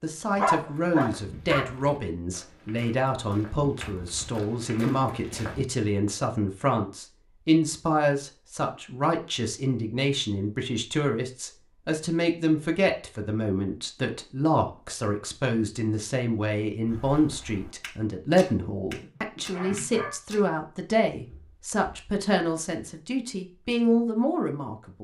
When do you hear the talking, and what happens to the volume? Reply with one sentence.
You can hear the talking from 0.0 to 25.0 s, at a steady volume.